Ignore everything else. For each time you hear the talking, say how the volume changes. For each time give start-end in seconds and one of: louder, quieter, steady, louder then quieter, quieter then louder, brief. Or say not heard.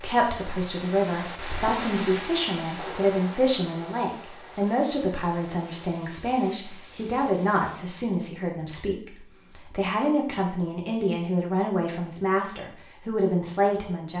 0.0-14.1 steady.